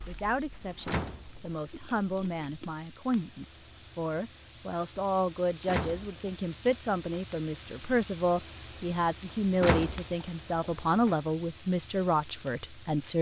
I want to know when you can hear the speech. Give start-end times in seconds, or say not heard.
0.1-13.1.